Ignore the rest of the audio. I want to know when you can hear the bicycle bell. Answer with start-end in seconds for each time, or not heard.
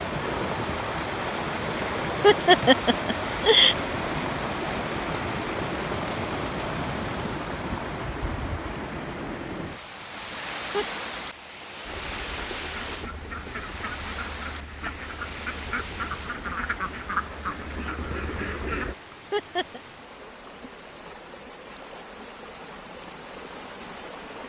not heard.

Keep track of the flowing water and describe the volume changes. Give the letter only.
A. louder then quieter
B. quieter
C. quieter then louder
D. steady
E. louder
B.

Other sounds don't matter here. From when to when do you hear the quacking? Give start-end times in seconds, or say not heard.
11.8-18.9.